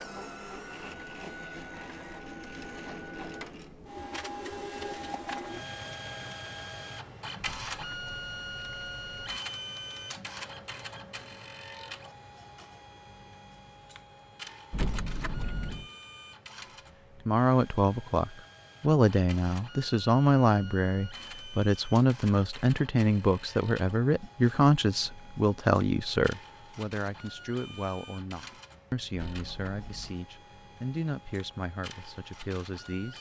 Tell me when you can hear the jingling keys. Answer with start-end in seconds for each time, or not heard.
7.4-9.4, 14.7-15.9, 29.1-30.2.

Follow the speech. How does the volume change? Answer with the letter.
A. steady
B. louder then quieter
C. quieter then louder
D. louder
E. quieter
E.